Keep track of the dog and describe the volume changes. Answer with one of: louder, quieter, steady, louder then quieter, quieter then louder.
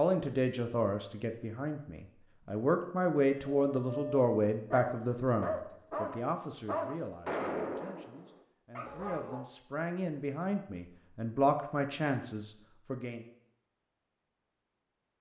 quieter.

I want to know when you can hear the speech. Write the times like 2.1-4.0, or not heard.
0.0-13.2.